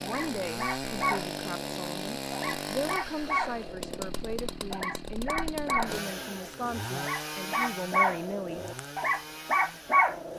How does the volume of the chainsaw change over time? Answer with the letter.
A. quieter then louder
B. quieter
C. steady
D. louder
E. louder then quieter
B.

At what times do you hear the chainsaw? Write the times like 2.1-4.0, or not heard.
0.0-10.3.